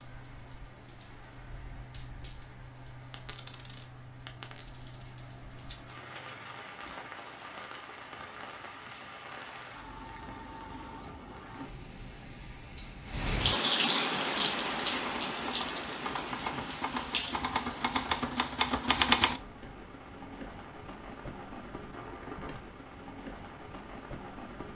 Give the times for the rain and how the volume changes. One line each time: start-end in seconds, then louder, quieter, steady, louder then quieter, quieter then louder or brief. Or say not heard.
0.0-24.6 louder then quieter.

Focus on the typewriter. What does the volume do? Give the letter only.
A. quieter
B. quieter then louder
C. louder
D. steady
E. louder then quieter
C.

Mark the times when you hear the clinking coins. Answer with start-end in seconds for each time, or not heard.
3.1-5.0.